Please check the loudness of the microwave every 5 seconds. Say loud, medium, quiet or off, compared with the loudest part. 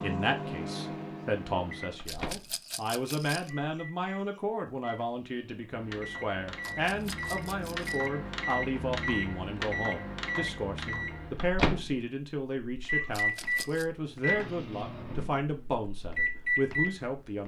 medium, loud, loud, loud.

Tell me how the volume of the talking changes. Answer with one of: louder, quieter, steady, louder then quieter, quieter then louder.
steady.